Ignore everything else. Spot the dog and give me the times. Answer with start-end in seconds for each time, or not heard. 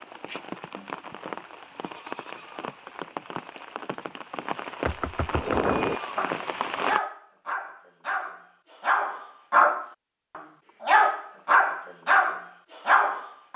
5.3-13.5.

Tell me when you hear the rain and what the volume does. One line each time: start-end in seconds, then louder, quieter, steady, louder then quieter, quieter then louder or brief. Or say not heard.
0.0-7.0 louder.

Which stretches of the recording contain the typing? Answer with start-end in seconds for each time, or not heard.
not heard.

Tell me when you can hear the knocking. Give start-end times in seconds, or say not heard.
4.8-5.8.